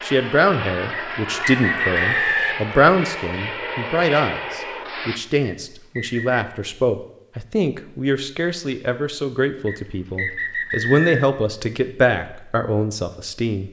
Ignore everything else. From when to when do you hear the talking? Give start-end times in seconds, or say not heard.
0.0-13.6.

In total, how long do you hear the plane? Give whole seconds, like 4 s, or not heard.
5 s.